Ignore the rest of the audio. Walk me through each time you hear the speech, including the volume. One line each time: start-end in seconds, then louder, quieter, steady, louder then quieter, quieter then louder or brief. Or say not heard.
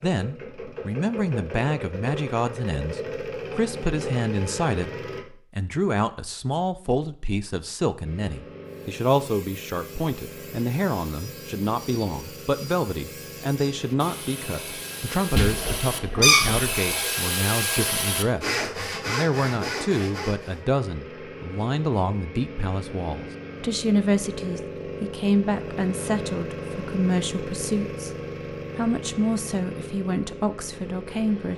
0.0-28.1 steady
28.8-31.5 brief.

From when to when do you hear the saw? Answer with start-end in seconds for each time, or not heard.
8.7-20.6.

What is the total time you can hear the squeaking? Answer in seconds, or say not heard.
2 s.